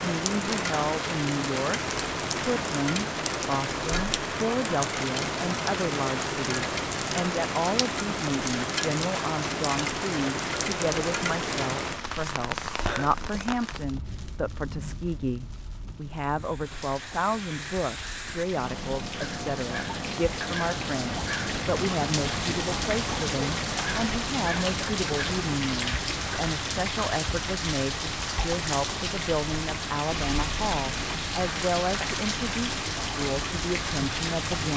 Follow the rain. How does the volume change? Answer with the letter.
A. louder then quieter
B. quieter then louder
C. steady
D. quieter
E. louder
B.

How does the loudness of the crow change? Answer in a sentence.
The volume of the crow goes up.